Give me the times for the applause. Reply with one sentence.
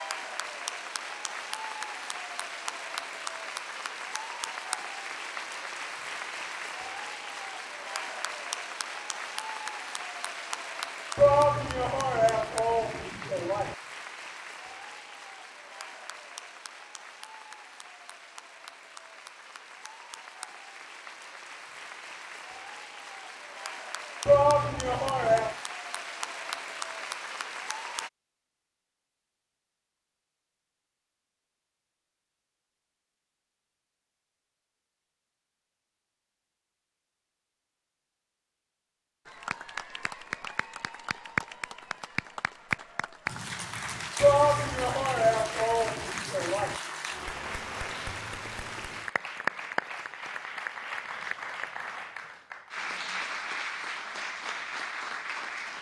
The applause can be heard from 0.0 to 28.1 s and from 39.2 to 55.7 s.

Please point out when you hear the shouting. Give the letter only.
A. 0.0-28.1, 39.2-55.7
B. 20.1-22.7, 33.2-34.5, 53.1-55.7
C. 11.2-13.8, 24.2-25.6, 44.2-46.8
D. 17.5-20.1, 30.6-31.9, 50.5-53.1
C.